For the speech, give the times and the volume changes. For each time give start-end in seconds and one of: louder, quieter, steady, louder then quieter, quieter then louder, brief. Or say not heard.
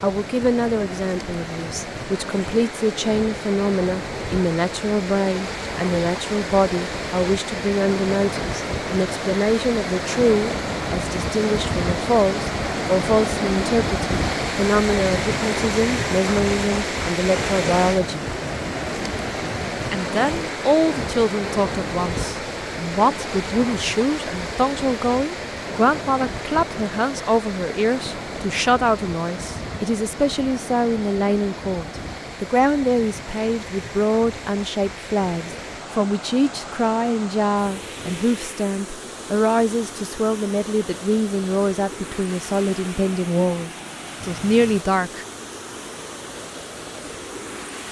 0.0-18.2 steady
19.9-45.2 steady.